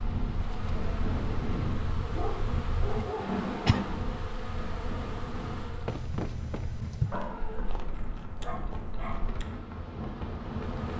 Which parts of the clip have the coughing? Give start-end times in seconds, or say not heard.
3.2-3.9, 5.8-7.2.